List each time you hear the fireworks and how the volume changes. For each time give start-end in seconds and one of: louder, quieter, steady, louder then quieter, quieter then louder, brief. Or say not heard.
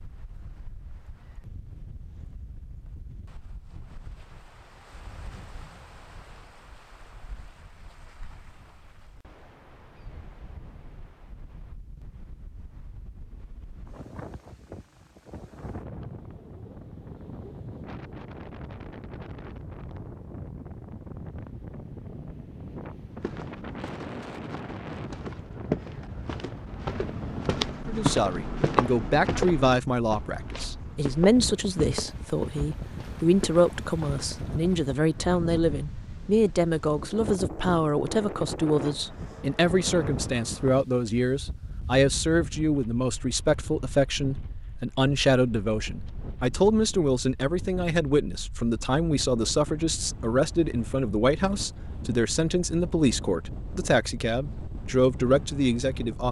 not heard.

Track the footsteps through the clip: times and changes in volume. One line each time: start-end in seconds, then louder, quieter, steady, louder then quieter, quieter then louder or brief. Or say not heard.
23.1-34.8 louder then quieter.